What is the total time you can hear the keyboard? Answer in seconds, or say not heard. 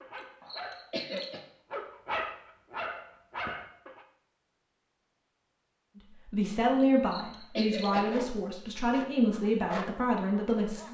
not heard.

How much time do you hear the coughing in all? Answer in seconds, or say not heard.
3 s.